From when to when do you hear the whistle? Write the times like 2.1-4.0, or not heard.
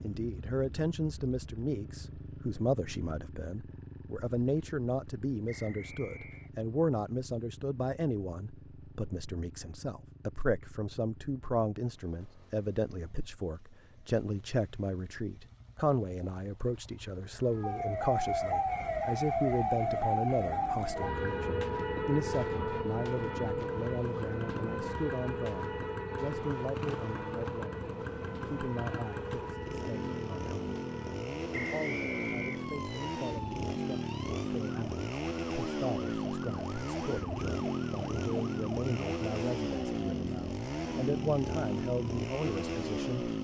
5.5-6.5, 31.5-32.7.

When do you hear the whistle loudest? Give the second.
32 s.